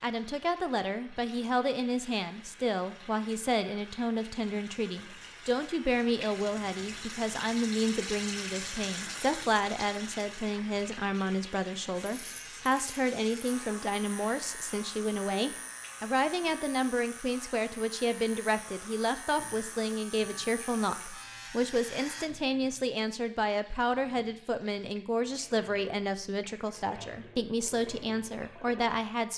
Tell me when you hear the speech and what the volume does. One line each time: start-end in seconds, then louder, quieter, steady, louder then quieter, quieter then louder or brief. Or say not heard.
0.0-29.3 steady.